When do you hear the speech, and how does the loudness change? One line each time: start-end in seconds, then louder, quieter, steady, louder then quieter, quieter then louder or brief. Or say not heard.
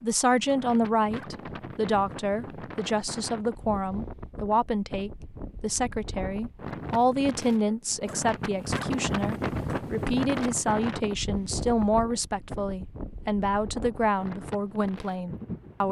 0.0-15.8 steady.